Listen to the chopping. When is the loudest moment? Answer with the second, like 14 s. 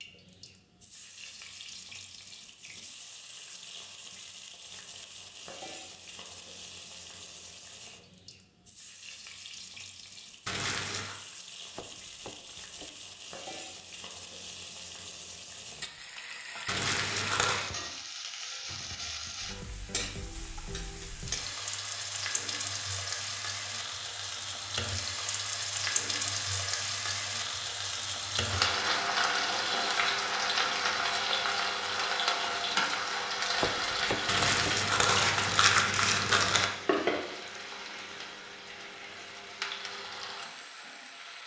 34 s.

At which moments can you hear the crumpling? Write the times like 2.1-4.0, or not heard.
10.4-11.2, 16.6-17.6, 34.2-36.7.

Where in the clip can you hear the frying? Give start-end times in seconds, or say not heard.
0.0-41.4.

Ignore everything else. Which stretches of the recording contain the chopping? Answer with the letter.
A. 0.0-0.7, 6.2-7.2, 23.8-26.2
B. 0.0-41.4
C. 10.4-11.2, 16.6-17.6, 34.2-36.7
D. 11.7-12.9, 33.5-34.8
D.